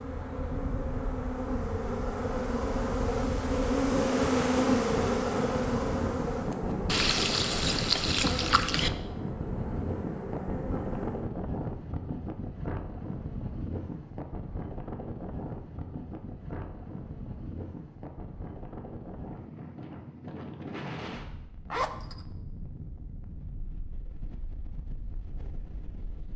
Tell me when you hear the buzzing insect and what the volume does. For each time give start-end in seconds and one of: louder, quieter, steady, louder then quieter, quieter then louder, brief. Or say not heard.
0.0-11.3 louder then quieter.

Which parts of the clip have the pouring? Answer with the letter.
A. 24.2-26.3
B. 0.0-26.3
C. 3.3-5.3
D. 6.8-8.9
D.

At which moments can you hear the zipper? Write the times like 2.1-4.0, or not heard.
21.7-22.2.